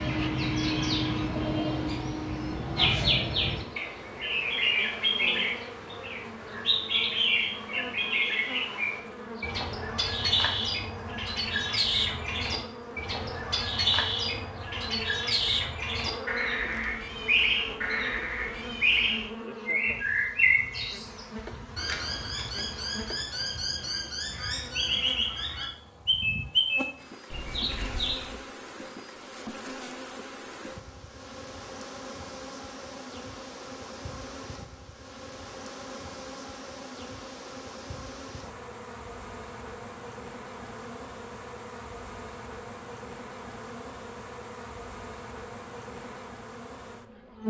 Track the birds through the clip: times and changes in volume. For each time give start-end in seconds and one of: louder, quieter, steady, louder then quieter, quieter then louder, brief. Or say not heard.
0.0-28.4 steady.